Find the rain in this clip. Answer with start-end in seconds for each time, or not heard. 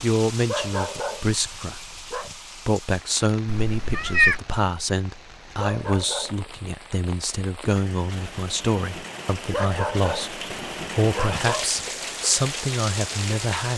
0.0-13.7.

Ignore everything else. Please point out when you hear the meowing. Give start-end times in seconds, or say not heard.
3.5-4.4.